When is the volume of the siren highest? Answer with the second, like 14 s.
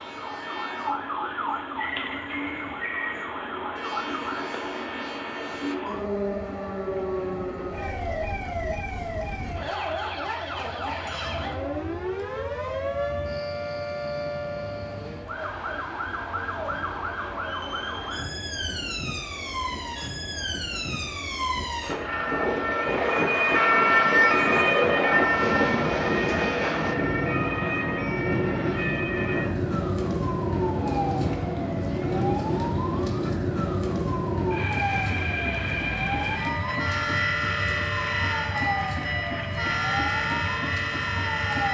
24 s.